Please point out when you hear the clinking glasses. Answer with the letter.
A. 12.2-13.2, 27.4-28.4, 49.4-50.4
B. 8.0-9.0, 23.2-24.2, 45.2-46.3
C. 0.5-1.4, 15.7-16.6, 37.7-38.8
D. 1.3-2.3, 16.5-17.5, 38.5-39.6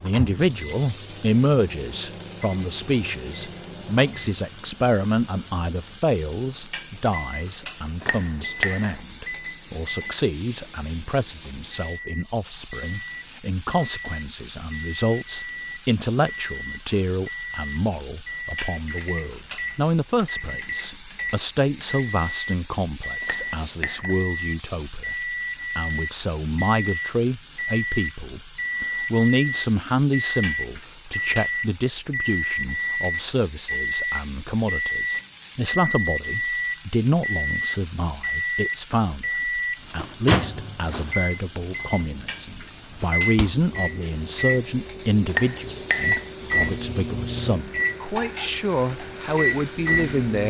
B.